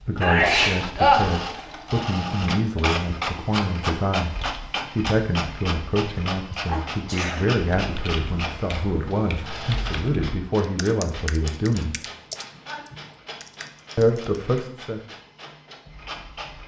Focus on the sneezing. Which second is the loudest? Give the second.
1 s.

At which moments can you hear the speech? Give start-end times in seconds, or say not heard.
0.1-11.9, 13.9-15.0.